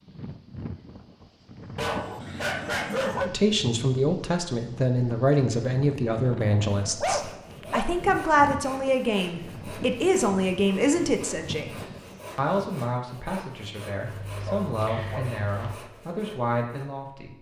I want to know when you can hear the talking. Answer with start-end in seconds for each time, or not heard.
3.2-17.3.